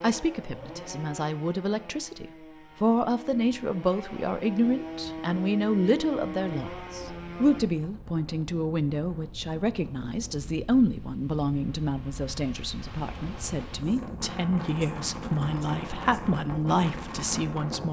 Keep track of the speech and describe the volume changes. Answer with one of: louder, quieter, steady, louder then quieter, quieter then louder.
steady.